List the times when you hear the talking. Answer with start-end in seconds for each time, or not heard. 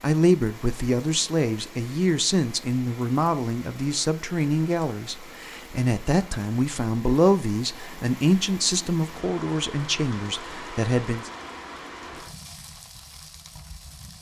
0.0-11.3.